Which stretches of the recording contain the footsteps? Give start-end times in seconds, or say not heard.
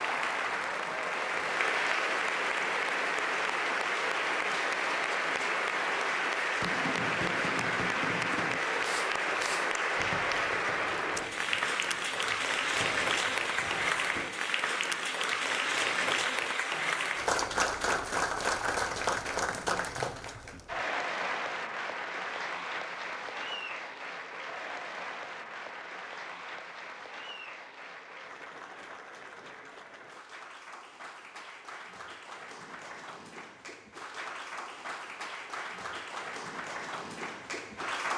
not heard.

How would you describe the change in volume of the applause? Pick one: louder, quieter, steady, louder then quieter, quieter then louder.
quieter.